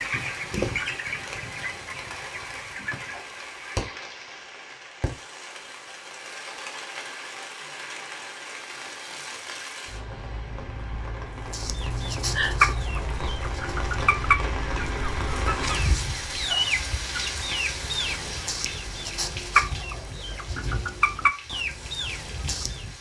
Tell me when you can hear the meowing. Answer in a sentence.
The meowing can be heard from 11.8 to 12.8 s.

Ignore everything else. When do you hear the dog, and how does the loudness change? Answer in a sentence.
You can't hear the dog here.